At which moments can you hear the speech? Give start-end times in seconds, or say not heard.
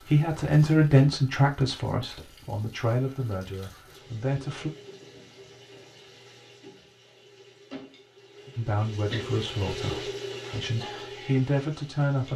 0.1-4.7, 8.6-12.3.